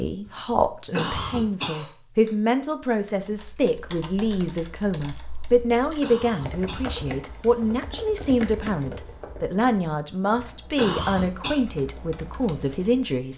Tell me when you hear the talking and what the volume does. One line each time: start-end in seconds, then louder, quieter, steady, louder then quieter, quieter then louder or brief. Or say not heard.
0.0-13.3 steady.